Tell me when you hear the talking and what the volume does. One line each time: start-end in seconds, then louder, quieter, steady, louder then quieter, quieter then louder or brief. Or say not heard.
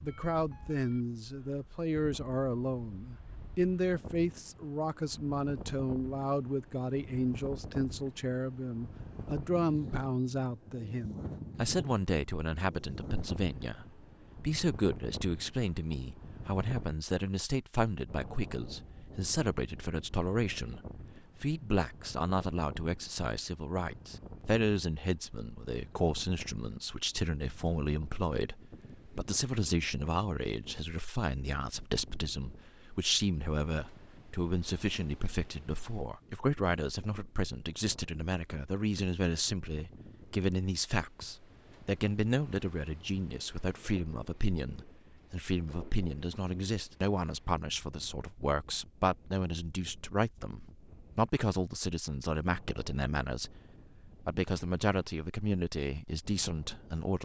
0.0-53.6 steady
54.2-57.1 brief.